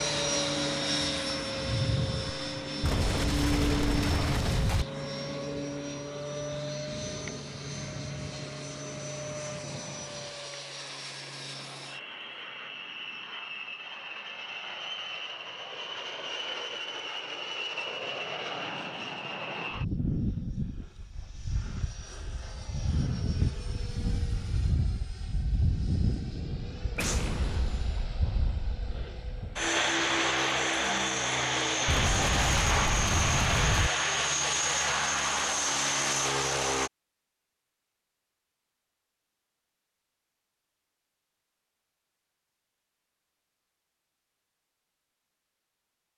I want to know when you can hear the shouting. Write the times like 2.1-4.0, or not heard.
not heard.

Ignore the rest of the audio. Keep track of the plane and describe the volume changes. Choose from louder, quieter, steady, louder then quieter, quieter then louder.
quieter then louder.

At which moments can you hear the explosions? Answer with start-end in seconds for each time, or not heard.
2.8-4.8, 26.9-28.1, 31.9-33.9.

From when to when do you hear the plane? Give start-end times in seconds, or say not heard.
0.0-36.9.